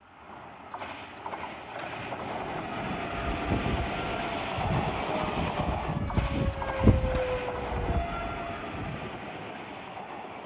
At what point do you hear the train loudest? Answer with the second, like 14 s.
5 s.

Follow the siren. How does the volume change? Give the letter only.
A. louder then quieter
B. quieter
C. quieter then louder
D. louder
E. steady
A.